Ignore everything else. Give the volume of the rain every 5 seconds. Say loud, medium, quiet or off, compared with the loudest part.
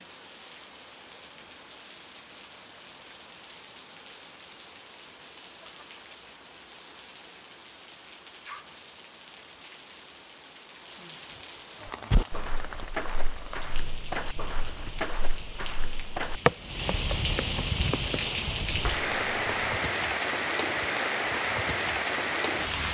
quiet, quiet, quiet, loud, loud.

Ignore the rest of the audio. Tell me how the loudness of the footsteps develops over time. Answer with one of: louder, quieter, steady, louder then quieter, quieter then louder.
louder then quieter.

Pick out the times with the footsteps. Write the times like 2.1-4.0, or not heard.
12.1-19.8.